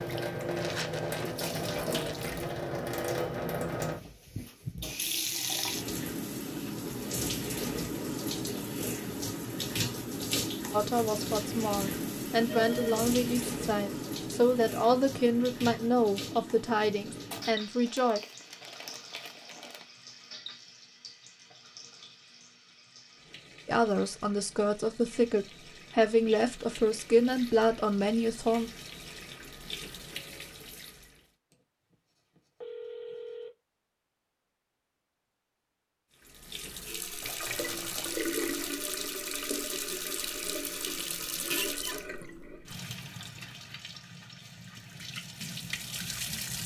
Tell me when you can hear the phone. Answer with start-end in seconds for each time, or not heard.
12.5-13.1, 31.5-33.5.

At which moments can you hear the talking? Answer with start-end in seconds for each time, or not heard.
10.7-18.2, 23.6-28.7.